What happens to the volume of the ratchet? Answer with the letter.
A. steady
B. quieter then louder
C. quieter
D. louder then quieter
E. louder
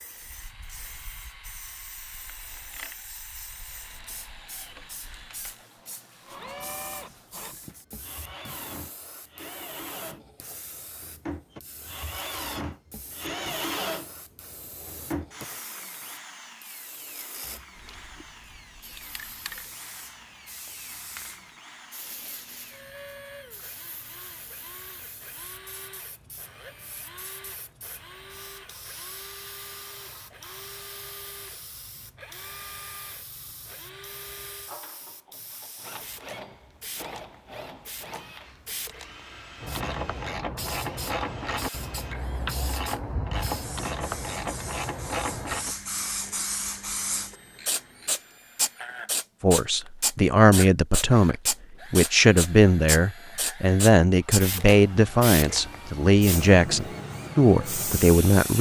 C.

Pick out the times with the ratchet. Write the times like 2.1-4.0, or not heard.
39.6-48.2.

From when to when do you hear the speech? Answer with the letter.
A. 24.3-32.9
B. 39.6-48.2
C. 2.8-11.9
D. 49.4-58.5
D.